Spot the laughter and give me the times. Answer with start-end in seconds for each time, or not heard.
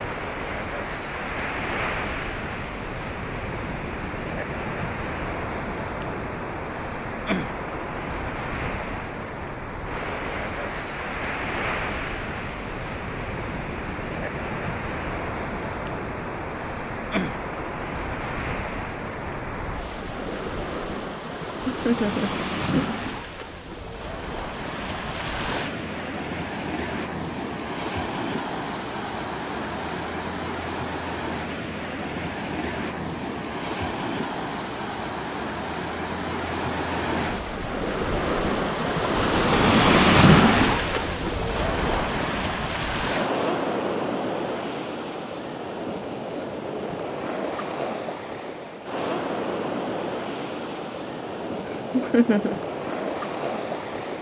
21.4-22.9, 51.6-52.5.